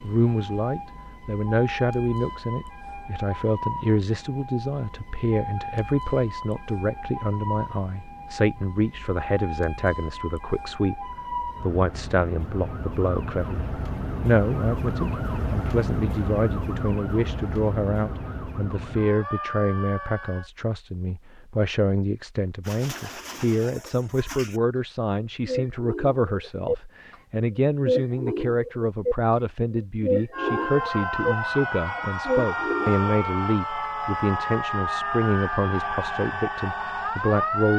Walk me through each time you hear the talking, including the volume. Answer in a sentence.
The talking can be heard from 0.0 to 37.7 s, at a steady volume.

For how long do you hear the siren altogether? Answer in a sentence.
You can hear the siren for 28 seconds altogether.